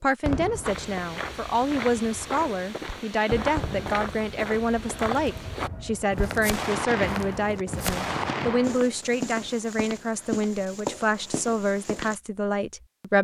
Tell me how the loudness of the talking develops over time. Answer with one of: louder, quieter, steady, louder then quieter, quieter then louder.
steady.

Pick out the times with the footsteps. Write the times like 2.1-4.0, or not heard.
0.6-12.2.